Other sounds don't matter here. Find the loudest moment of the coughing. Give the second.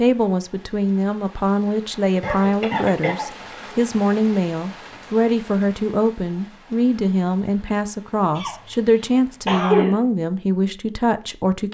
10 s.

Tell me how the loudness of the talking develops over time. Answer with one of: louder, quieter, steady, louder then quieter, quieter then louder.
steady.